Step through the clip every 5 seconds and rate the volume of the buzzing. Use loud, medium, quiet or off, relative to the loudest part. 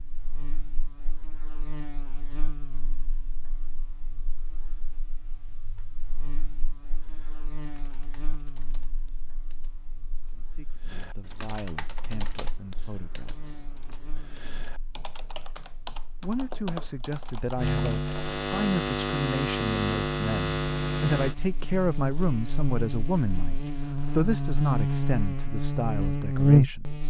quiet, quiet, quiet, medium, medium, loud.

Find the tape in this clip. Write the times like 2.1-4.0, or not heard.
not heard.